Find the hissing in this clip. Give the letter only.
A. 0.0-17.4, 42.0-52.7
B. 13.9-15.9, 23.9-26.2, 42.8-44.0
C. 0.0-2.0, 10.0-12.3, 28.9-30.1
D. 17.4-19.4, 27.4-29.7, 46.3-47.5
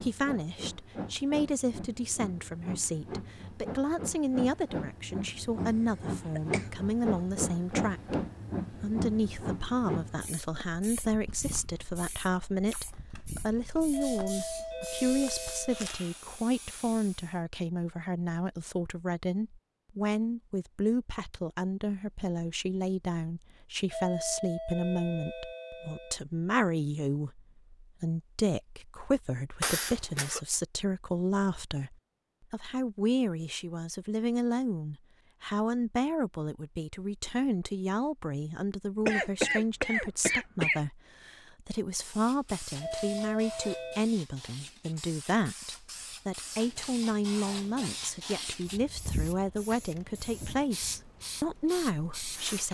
A.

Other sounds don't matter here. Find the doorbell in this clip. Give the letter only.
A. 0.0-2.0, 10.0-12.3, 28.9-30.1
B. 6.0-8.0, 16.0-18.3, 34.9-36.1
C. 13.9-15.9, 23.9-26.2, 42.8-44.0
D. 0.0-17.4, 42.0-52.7
C.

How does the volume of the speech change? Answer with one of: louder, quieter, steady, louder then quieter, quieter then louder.
steady.